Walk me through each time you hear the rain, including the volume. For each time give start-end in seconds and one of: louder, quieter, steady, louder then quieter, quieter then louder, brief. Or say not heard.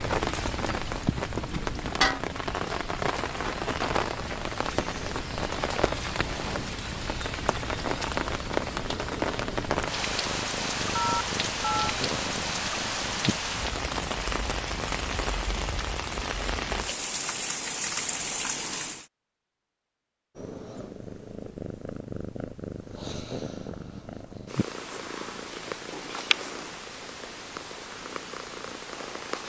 0.0-19.1 steady.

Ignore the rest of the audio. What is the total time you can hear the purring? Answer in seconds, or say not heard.
25 s.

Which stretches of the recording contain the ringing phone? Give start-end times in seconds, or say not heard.
10.9-11.9.